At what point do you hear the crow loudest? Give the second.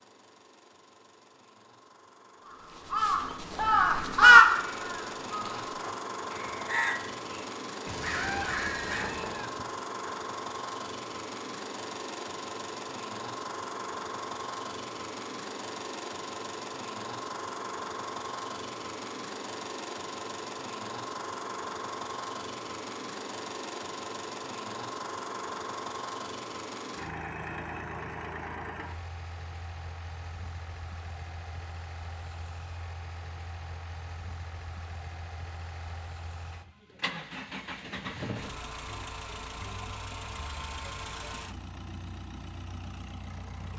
4 s.